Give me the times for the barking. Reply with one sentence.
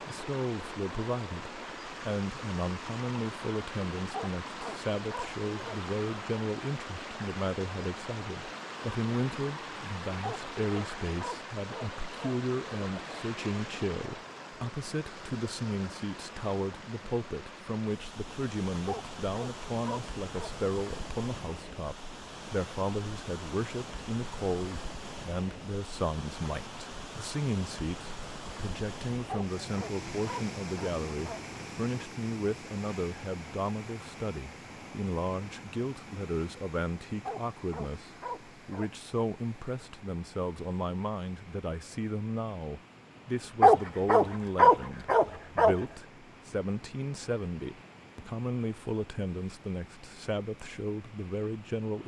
You can hear the barking from 4.1 to 5.8 s, from 10.2 to 12.3 s, from 18.9 to 20.6 s, from 29.2 to 31.4 s, from 37.2 to 38.9 s and from 43.6 to 45.8 s.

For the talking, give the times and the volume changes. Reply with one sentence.
You can hear the talking from 0.1 to 52.0 s, at a steady volume.